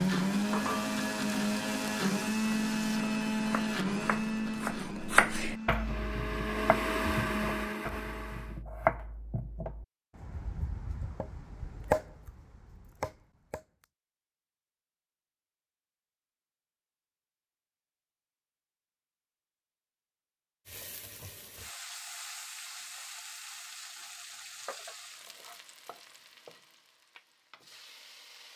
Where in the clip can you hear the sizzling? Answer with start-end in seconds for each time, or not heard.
0.0-3.0, 20.6-28.5.